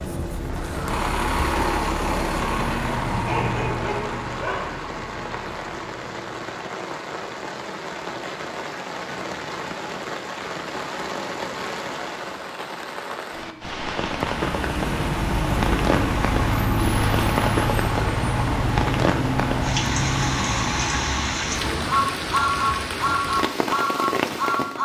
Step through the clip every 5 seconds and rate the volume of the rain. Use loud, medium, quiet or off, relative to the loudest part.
medium, medium, loud, loud, loud.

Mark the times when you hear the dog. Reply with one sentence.
The dog can be heard from 3.2 to 4.7 s.